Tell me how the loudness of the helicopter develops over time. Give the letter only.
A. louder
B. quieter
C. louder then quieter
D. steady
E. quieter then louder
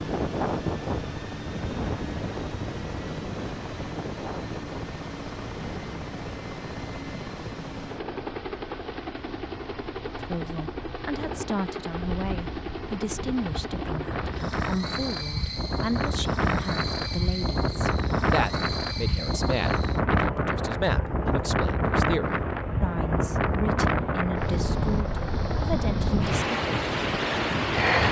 D.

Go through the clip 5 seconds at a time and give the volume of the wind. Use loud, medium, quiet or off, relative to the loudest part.
medium, quiet, medium, loud, loud, loud.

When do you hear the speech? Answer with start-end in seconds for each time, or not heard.
10.2-26.6.